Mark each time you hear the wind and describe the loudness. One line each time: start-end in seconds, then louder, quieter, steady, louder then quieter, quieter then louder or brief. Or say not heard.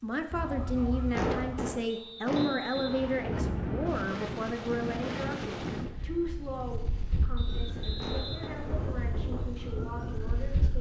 2.9-10.7 quieter.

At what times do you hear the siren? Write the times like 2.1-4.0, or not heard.
0.0-1.8, 7.4-10.7.